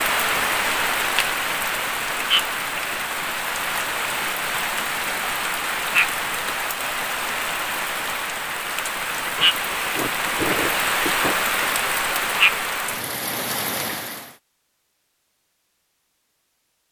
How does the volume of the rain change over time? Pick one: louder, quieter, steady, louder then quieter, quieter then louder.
steady.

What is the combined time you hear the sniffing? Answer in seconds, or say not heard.
2 s.